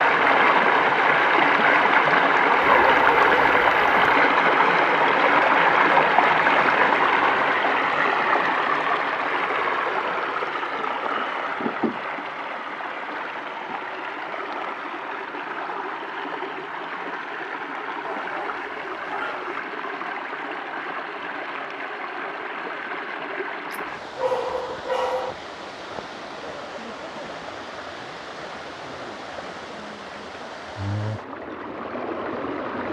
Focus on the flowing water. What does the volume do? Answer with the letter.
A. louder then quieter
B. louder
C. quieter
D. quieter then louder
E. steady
C.